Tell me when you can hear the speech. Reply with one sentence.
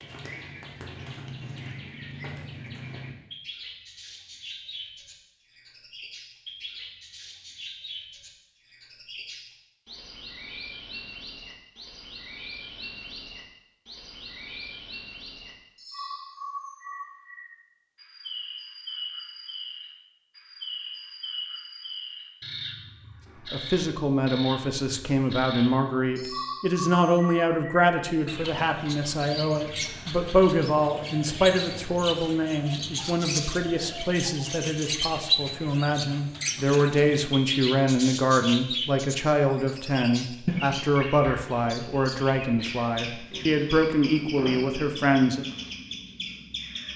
The speech can be heard from 23.5 to 45.5 s.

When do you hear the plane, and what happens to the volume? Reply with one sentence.
The plane can't be heard in this clip.